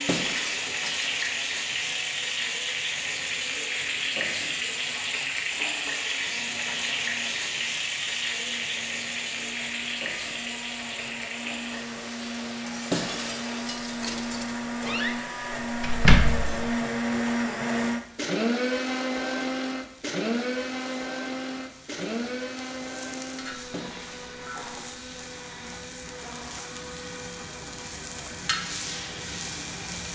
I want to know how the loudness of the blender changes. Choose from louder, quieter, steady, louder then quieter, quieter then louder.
louder then quieter.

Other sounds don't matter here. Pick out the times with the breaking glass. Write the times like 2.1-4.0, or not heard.
0.1-1.2, 12.9-14.4, 23.7-24.4.